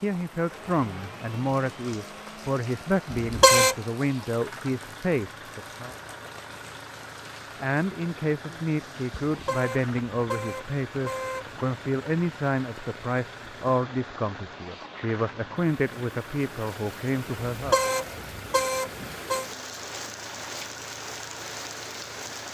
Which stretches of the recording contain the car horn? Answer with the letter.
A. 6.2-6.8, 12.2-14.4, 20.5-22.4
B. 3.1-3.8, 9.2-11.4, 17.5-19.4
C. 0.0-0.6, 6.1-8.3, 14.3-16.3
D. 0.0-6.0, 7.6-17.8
B.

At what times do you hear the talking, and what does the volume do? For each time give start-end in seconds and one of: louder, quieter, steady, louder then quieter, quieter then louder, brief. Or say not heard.
0.0-6.0 steady
7.6-17.8 steady.